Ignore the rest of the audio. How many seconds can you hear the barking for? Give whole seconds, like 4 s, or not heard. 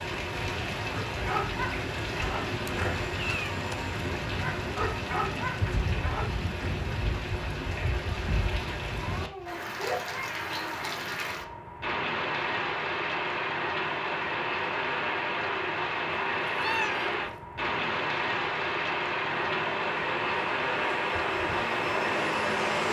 6 s.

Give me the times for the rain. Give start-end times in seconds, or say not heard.
0.0-22.8.